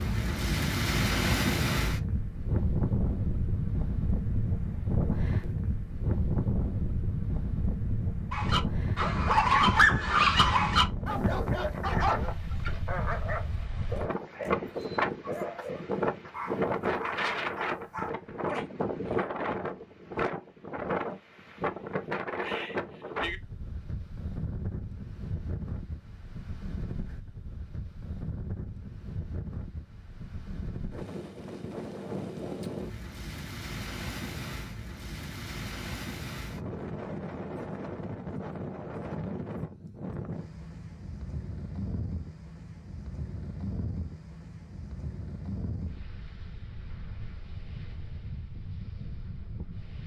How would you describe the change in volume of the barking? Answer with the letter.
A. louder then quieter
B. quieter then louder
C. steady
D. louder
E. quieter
E.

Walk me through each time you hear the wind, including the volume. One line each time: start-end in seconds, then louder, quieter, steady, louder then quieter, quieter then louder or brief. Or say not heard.
0.0-50.0 quieter.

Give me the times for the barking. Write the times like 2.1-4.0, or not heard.
8.3-19.2.